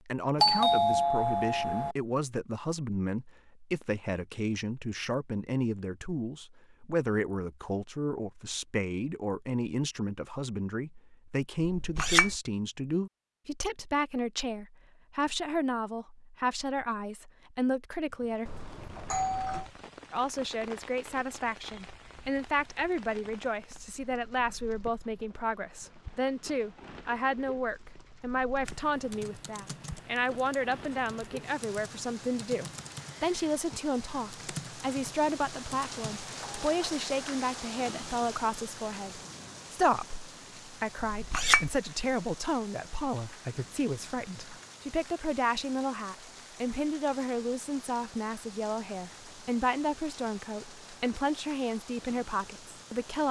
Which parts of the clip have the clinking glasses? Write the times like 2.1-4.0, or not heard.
11.6-12.3, 41.0-41.7.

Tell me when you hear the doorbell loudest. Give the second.
1 s.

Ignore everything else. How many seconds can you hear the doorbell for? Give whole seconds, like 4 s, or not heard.
3 s.